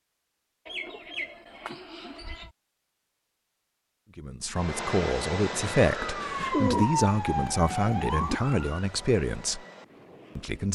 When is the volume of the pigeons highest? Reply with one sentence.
The volume of the pigeons peaks at 7 seconds.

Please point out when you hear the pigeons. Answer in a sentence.
The pigeons can be heard from 0.7 to 2.5 s and from 6.3 to 8.4 s.